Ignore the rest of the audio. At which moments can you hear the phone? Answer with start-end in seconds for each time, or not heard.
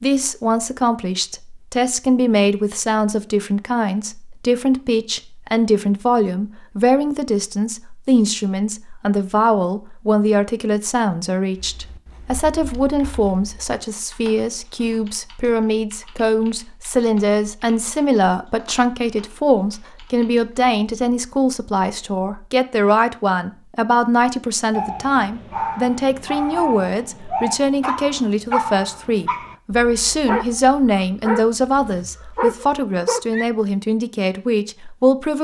not heard.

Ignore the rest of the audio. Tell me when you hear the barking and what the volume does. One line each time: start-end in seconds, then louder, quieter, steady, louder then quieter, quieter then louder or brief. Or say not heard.
24.7-33.5 steady.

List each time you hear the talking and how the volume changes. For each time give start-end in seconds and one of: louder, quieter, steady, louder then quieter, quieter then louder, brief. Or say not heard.
0.0-35.3 steady.